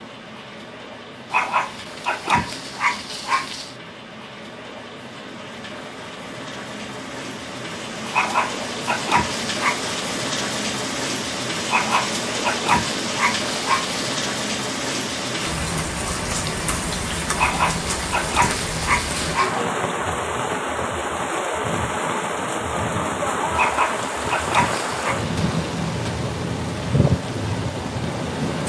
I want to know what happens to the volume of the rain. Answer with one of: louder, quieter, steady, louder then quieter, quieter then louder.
louder.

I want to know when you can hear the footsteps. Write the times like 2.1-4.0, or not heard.
not heard.